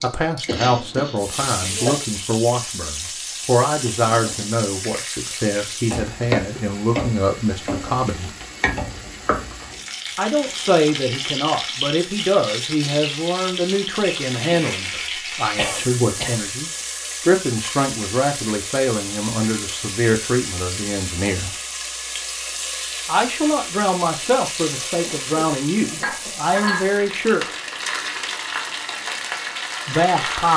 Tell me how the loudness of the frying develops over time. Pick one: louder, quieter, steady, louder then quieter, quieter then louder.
steady.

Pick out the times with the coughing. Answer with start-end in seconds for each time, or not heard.
0.5-2.0, 15.6-16.4, 25.1-26.6.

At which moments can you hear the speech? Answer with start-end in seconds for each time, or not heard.
0.0-8.3, 10.2-21.5, 23.1-27.6, 29.9-30.5.